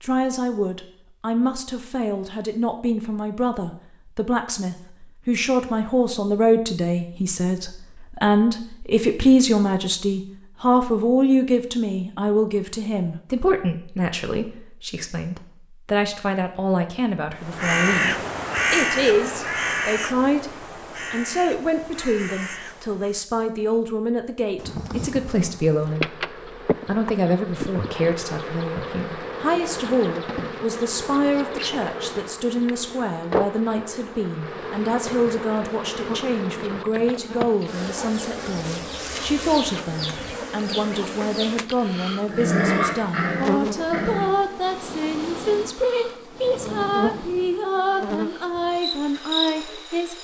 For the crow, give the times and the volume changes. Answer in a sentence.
You can hear the crow from 17.4 to 23.2 s, getting quieter.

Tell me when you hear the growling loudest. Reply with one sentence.
The loudest moment of the growling is at 43 seconds.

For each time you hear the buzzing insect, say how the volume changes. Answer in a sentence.
The buzzing insect can be heard from 24.6 to 50.1 s, at a steady volume.